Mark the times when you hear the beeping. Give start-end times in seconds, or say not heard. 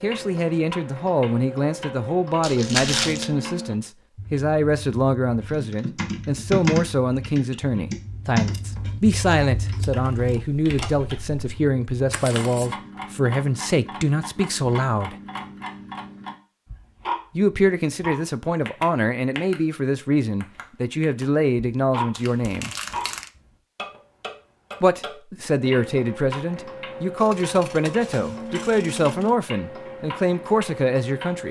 not heard.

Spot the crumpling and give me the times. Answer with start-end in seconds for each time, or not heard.
2.4-3.3, 12.1-12.7, 22.1-23.3.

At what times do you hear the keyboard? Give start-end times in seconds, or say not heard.
5.5-11.4.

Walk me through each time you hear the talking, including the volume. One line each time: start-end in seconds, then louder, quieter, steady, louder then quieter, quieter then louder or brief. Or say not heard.
0.0-15.2 steady
17.4-22.7 steady
24.8-31.4 steady.